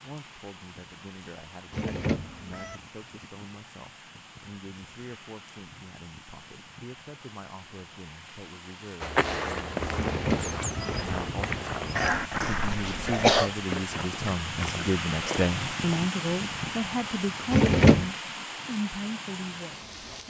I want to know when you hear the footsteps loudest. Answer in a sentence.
The volume of the footsteps peaks at 9 seconds.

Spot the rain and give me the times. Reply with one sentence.
The rain can be heard from 0.0 to 20.2 s.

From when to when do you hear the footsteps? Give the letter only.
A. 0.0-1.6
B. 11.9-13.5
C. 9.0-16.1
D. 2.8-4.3
C.